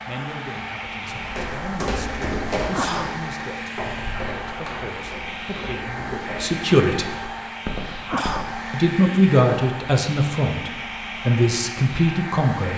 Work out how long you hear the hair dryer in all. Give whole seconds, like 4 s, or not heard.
13 s.